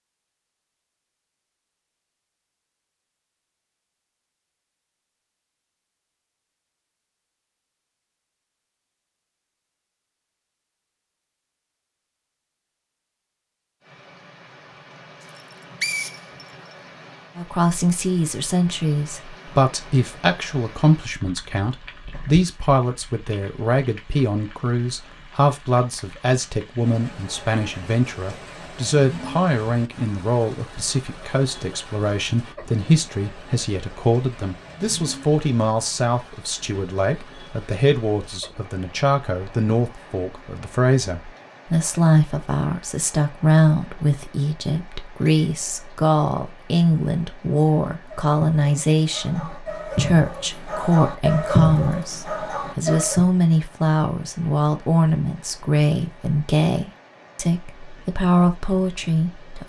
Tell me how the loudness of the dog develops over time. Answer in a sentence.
The loudness of the dog goes up, then down.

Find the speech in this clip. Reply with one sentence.
The speech can be heard from 17.4 to 59.6 s.